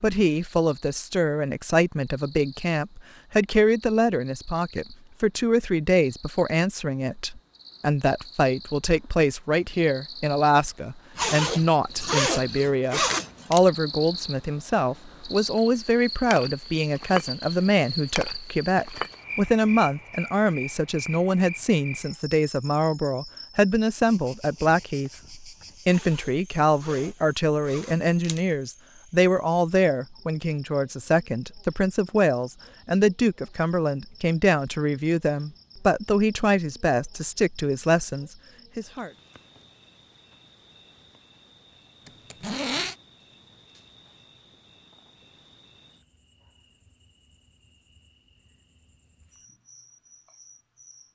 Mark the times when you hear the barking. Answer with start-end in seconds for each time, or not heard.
not heard.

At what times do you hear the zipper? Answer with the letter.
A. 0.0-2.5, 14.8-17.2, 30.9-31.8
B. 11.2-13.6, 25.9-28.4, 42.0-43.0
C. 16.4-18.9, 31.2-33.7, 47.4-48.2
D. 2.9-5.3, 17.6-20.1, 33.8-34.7
B.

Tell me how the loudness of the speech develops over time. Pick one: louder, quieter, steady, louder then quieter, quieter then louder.
steady.